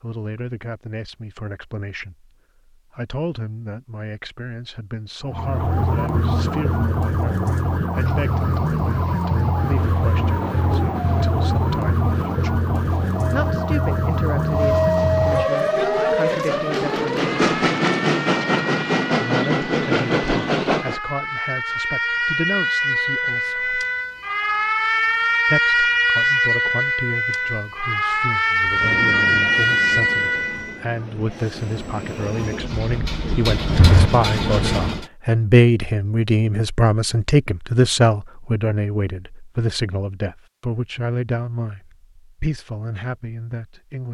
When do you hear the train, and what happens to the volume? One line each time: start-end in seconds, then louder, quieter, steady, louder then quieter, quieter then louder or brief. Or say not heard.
8.0-21.0 louder
28.6-35.0 quieter then louder.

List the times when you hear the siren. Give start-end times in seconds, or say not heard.
5.2-30.8.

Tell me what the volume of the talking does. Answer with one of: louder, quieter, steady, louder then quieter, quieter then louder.
louder.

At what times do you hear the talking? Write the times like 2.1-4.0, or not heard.
0.0-12.6, 13.3-17.6, 19.1-23.9, 25.4-44.0.